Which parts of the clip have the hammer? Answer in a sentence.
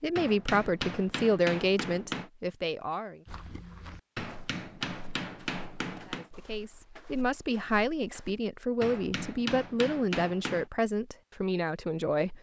The hammer can be heard from 0.1 to 2.3 s, from 4.2 to 6.3 s and from 8.8 to 10.7 s.